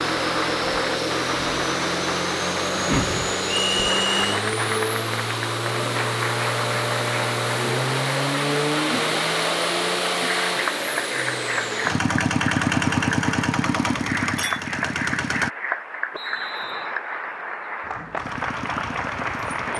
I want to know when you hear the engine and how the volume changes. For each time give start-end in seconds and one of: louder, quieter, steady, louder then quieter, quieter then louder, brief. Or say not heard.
0.0-15.5 steady
18.1-19.7 brief.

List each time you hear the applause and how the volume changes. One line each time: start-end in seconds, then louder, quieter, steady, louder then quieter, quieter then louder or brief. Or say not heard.
0.0-19.7 steady.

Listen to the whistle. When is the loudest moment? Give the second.
4 s.